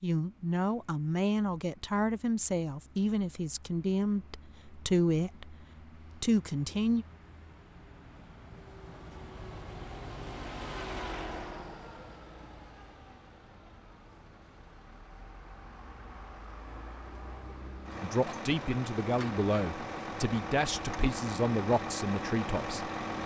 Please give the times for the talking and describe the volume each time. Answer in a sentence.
The talking can be heard from 0.0 to 5.5 s, at a steady volume; briefly from 6.2 to 7.0 s; and from 18.0 to 22.9 s, at a steady volume.